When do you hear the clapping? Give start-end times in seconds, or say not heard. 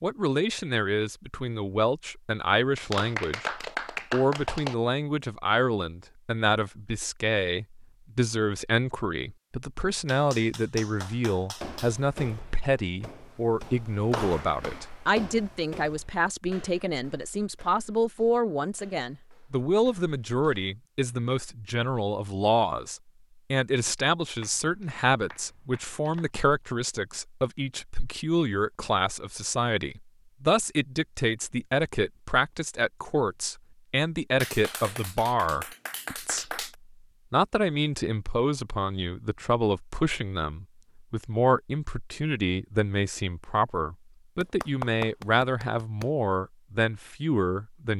2.8-4.8, 10.1-11.9, 24.4-26.3, 34.4-36.8, 44.4-46.0.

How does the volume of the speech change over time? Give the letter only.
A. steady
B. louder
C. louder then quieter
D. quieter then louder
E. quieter
A.